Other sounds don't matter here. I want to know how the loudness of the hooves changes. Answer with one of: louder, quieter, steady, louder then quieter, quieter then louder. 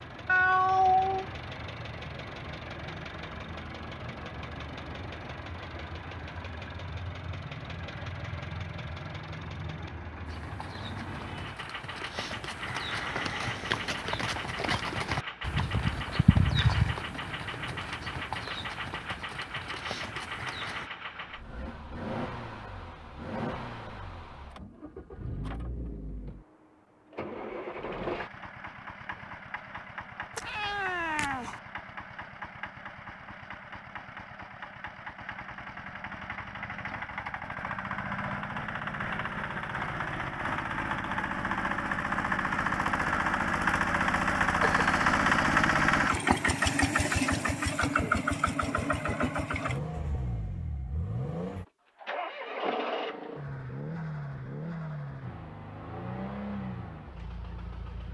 louder then quieter.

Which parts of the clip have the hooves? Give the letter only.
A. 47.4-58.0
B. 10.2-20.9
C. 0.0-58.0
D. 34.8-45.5
B.